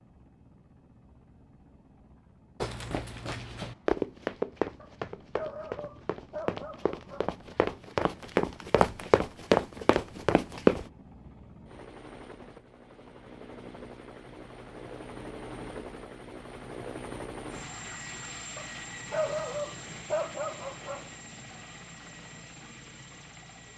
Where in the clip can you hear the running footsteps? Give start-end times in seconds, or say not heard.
2.6-10.8.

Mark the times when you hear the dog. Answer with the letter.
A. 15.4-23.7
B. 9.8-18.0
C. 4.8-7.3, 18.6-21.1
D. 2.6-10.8
C.